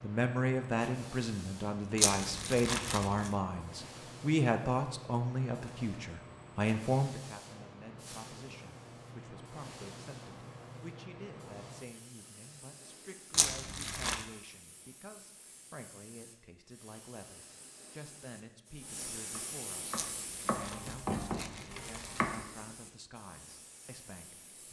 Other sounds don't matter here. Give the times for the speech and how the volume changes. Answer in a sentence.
The speech can be heard from 0.0 to 24.6 s, getting quieter.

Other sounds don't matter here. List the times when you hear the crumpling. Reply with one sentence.
The crumpling can be heard from 1.9 to 3.4 s, from 13.3 to 14.2 s and from 19.9 to 22.4 s.